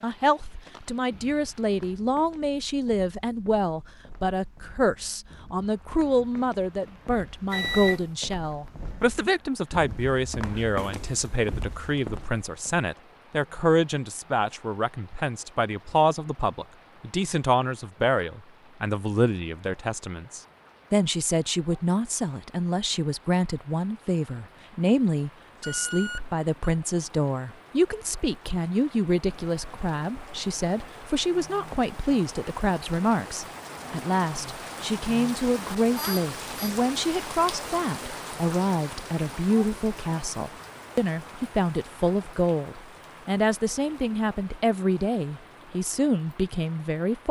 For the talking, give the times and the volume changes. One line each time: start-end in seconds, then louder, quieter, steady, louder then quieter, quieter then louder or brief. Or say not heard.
0.0-47.2 steady.